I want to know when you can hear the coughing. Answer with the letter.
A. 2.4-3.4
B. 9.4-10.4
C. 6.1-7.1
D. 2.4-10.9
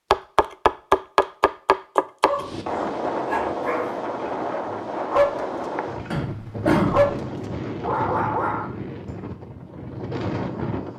C.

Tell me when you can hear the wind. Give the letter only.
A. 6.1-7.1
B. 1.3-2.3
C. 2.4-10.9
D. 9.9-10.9
C.